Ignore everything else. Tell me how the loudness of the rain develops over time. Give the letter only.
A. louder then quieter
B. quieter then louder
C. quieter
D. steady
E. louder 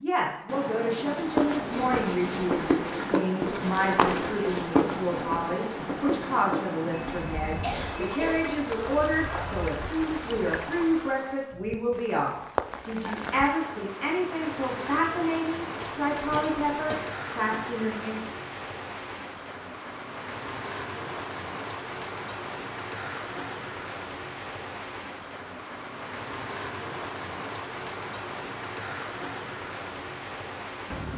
D.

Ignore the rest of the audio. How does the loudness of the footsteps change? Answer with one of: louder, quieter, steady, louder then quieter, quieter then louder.
quieter.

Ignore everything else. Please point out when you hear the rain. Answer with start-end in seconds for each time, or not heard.
0.0-31.1.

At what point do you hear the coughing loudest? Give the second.
8 s.